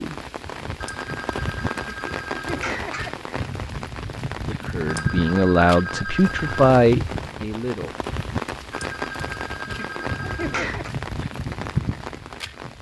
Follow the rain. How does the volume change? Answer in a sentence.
The loudness of the rain stays about the same.